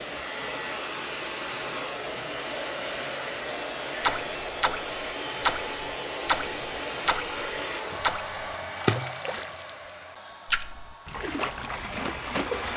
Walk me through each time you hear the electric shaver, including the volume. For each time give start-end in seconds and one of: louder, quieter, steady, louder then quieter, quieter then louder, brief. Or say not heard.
0.0-7.8 steady.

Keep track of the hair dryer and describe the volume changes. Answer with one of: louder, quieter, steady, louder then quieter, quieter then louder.
quieter.